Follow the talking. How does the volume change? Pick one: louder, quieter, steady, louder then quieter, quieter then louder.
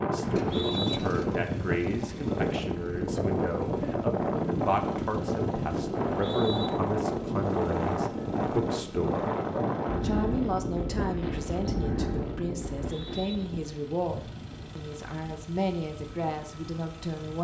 steady.